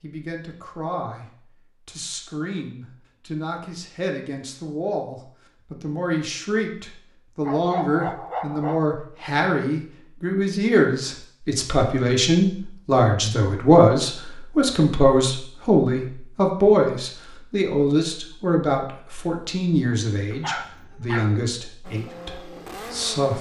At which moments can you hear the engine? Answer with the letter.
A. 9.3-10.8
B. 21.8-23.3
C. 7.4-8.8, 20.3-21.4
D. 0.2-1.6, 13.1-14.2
B.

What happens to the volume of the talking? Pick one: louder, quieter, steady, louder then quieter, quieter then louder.
louder then quieter.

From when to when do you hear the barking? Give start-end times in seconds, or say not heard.
7.4-8.8, 20.3-21.4.